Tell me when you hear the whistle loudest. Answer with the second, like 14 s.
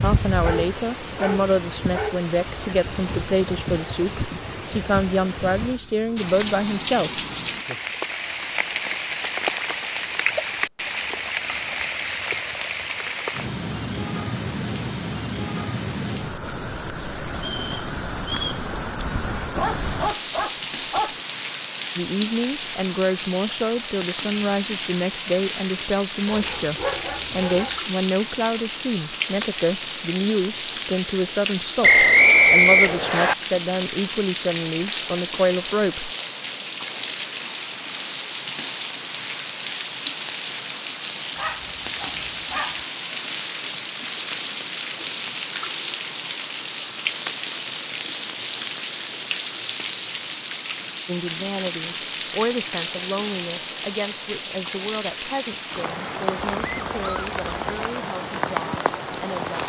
32 s.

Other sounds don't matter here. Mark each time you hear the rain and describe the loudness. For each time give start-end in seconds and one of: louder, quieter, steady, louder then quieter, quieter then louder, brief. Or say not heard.
0.0-59.6 steady.